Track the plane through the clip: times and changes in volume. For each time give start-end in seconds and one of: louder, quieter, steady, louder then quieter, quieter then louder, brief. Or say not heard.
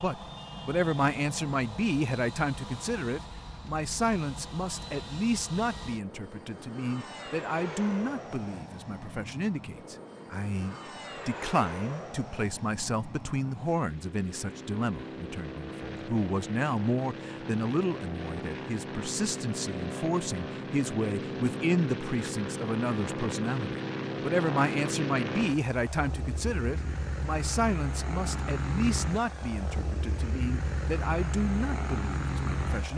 0.0-32.9 louder.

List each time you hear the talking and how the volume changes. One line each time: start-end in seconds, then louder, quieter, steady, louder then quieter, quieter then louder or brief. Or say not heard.
0.0-32.9 steady.